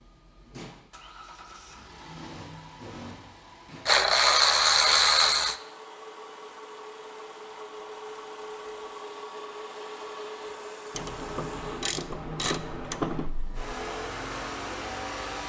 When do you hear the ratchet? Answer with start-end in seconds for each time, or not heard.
3.9-5.5, 10.9-13.3.